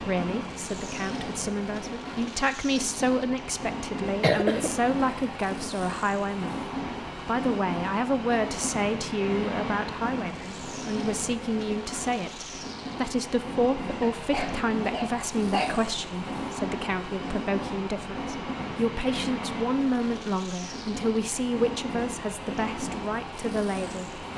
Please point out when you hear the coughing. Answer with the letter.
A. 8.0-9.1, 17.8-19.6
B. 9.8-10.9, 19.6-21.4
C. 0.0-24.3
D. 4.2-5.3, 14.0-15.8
D.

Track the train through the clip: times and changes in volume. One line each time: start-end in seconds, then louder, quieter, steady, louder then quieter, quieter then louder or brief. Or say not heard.
0.0-24.3 steady.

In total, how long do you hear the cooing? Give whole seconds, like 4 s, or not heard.
not heard.